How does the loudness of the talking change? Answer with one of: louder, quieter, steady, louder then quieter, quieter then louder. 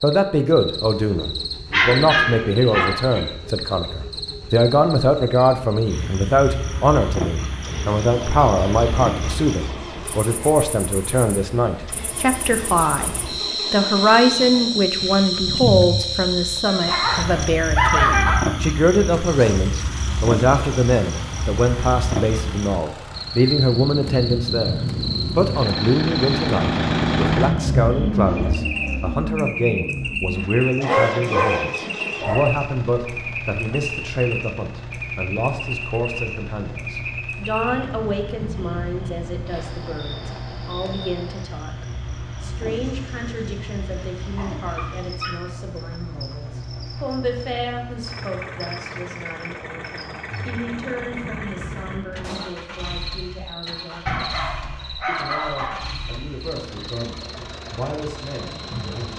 quieter.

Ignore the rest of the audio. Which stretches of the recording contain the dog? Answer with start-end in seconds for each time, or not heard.
1.7-3.2, 16.6-18.4, 30.8-32.5, 42.6-45.4, 54.0-55.9.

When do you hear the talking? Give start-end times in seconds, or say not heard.
0.0-13.1, 13.7-59.1.